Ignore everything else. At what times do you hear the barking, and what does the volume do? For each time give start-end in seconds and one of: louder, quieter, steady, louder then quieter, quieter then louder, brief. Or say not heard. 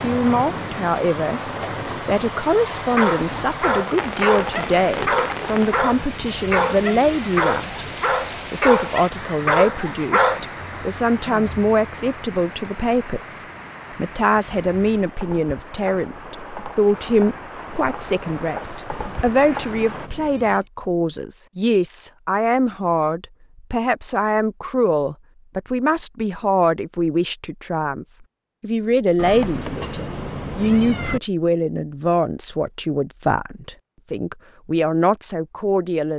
2.8-10.4 steady.